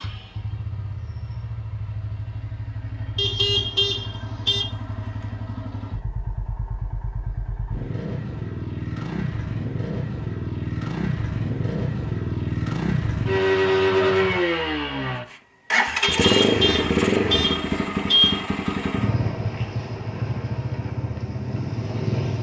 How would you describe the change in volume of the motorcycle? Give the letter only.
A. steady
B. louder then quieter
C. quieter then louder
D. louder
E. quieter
B.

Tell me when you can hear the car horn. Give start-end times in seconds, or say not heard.
3.1-4.7, 16.0-18.4.